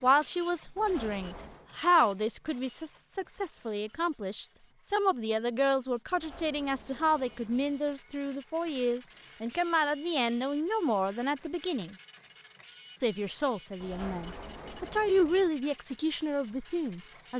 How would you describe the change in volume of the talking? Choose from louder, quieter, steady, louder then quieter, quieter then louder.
steady.